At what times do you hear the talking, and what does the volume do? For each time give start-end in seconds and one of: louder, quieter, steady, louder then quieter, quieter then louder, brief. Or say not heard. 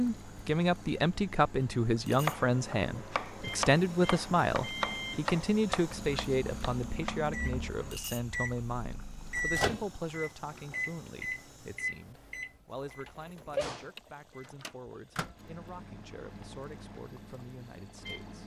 0.0-18.4 quieter.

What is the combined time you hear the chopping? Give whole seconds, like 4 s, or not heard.
6 s.